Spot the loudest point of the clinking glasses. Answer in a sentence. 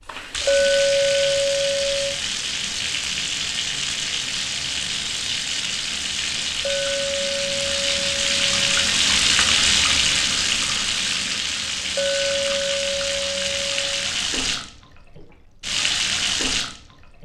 The loudest moment of the clinking glasses is at 1 second.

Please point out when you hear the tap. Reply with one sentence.
You can hear the tap from 0.0 to 17.2 s.